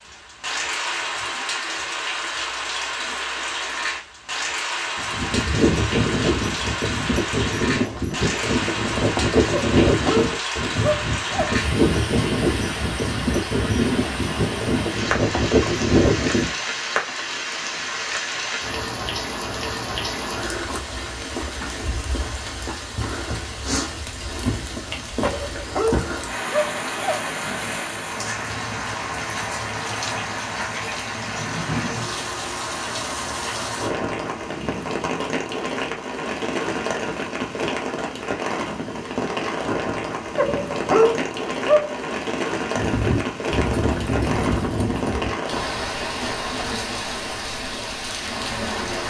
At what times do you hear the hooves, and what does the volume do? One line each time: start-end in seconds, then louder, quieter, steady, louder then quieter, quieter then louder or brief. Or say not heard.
5.0-16.6 steady
42.8-45.4 brief.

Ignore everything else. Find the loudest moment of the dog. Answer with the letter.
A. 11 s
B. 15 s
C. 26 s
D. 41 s
D.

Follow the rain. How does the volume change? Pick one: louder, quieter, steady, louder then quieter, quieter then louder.
steady.